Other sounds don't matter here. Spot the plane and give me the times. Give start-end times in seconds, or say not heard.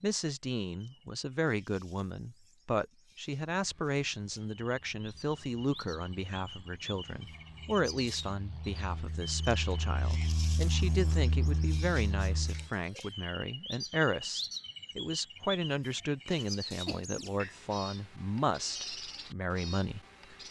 3.5-12.7.